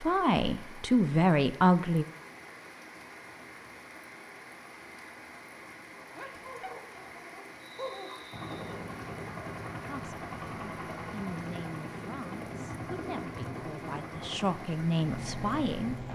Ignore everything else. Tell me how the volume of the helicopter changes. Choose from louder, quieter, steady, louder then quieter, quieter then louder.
steady.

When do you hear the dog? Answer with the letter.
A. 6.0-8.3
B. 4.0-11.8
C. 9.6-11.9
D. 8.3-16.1
A.